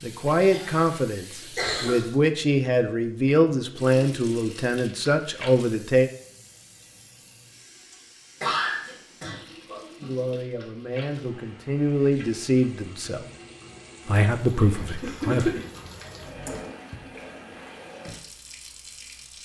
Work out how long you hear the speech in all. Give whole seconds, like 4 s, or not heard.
11 s.